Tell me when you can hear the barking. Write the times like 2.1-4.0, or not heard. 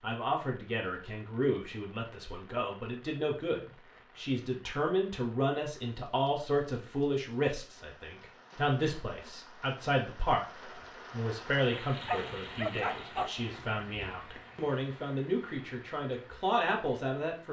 12.1-13.6.